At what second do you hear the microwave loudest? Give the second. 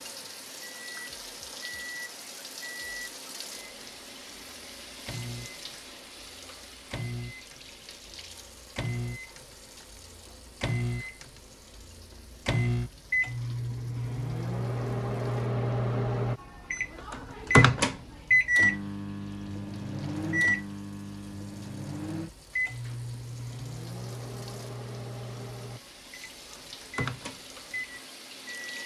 18 s.